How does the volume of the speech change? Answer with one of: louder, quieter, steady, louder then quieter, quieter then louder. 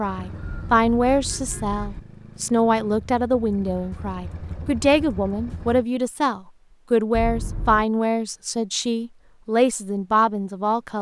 steady.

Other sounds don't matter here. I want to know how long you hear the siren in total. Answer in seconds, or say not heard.
not heard.